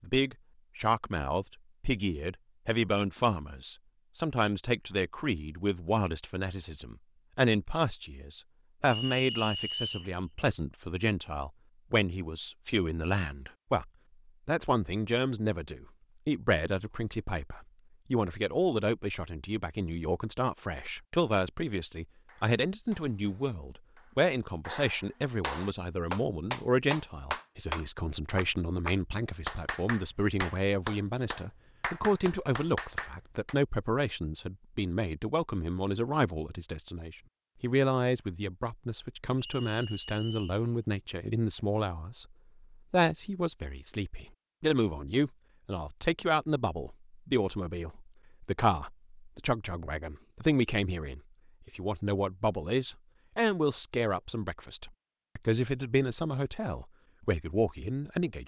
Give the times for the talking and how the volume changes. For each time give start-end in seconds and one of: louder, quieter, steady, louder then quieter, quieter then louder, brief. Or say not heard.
0.0-58.4 steady.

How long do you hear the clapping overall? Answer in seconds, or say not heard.
11 s.